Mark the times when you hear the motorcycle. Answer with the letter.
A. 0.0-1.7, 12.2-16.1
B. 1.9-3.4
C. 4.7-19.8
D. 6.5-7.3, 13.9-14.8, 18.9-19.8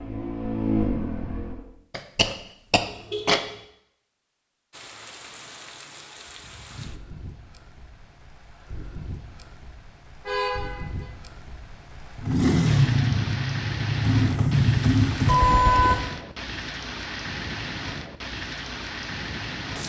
A.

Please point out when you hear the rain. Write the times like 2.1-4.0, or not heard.
4.7-19.8.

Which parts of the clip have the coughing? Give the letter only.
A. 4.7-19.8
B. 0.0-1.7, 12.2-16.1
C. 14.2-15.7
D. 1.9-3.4
D.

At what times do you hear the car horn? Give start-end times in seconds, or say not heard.
2.9-3.6, 10.2-11.1, 15.2-16.1.